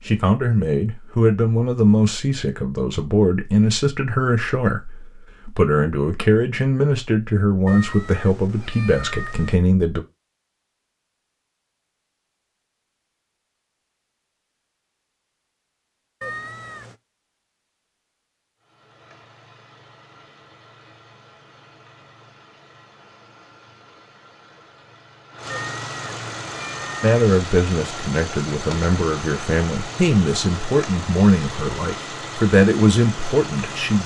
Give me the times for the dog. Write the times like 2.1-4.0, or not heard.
not heard.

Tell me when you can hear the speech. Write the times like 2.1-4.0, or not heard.
0.1-10.0, 27.0-34.0.